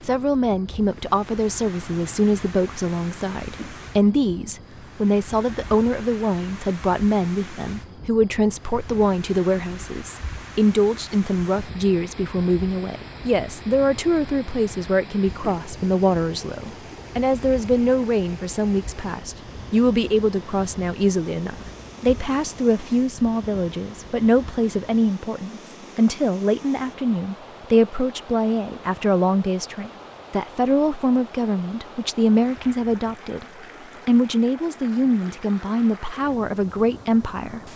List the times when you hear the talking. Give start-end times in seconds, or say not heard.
0.0-33.5, 34.0-37.6.